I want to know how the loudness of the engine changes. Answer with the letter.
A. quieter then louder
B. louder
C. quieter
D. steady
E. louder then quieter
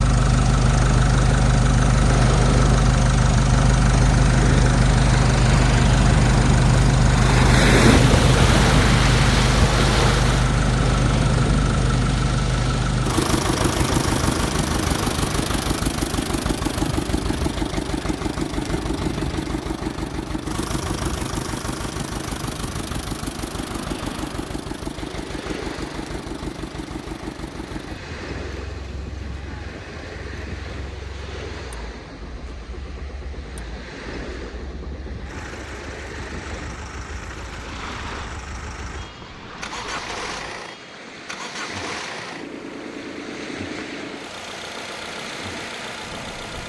A.